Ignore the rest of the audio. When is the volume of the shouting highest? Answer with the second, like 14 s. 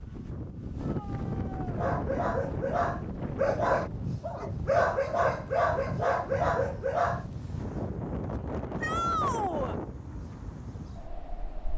9 s.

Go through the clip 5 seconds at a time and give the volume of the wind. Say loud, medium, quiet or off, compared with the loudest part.
loud, loud, medium.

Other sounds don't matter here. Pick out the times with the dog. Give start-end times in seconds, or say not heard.
1.7-7.2.